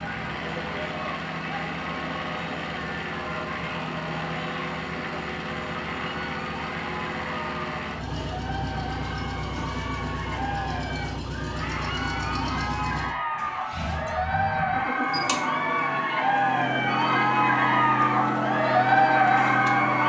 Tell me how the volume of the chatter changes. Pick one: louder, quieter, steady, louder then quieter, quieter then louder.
louder.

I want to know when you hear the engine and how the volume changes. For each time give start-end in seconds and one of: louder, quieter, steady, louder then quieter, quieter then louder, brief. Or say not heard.
0.0-20.0 steady.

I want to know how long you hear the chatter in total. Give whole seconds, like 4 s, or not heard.
20 s.